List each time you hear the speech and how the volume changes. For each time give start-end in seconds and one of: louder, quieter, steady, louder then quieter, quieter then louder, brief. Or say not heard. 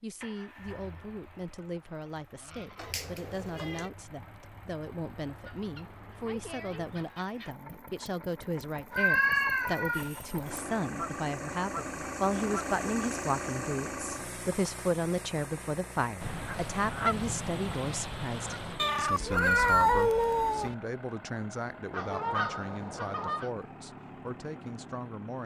0.0-25.4 louder then quieter.